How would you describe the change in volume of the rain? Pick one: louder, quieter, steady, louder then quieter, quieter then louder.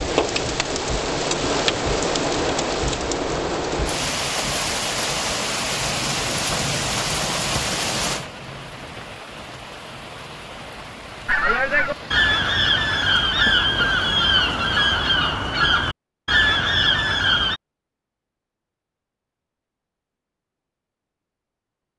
quieter.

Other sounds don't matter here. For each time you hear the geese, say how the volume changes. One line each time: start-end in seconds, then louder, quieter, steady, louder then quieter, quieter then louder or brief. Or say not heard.
11.2-17.6 steady.